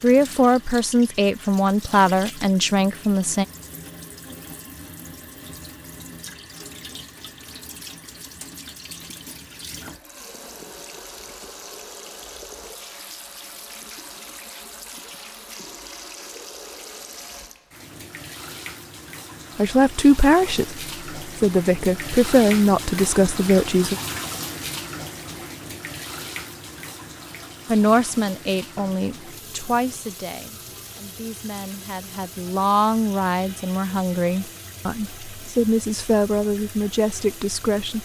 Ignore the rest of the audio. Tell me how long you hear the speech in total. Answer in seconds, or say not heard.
18 s.